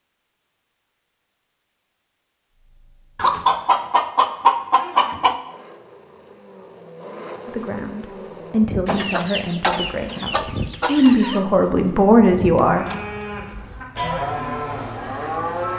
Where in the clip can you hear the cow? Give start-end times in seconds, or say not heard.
12.7-15.7.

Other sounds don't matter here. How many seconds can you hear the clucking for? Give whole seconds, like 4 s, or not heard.
5 s.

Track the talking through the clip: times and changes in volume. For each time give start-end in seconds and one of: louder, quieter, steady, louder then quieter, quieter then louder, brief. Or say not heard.
7.5-12.8 quieter then louder.